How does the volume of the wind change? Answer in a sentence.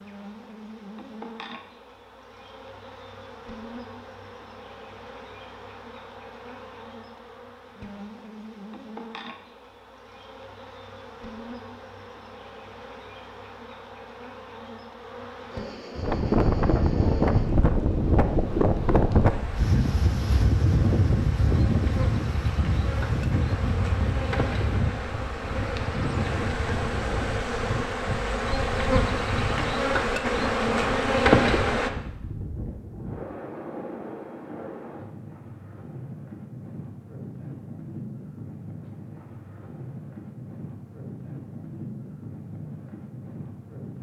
The loudness of the wind goes down.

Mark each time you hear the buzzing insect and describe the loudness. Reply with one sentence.
You can hear the buzzing insect from 0.0 to 31.9 s, getting louder.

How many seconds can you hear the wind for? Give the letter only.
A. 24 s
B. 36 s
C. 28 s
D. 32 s
C.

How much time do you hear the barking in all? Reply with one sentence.
The barking can't be heard in this clip.